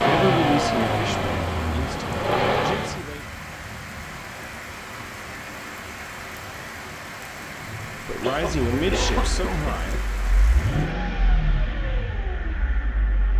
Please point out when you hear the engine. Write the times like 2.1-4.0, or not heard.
0.0-3.0, 8.6-13.3.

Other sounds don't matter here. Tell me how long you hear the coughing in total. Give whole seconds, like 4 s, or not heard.
2 s.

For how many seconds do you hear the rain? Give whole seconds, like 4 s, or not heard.
11 s.